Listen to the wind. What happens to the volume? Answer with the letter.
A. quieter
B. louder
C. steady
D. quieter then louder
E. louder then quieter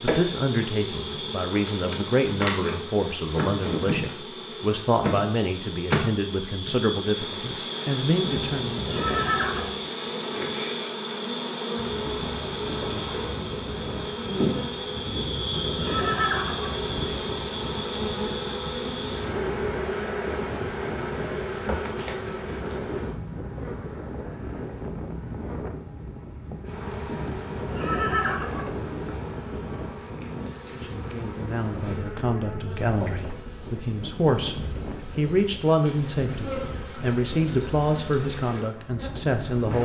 C.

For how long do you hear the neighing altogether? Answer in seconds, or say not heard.
5 s.